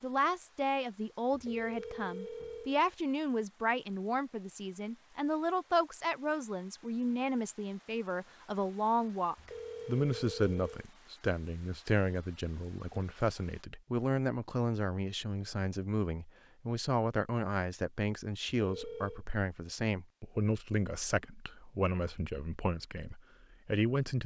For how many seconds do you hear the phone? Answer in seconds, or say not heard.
4 s.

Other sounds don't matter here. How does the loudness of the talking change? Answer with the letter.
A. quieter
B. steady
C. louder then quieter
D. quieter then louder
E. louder
B.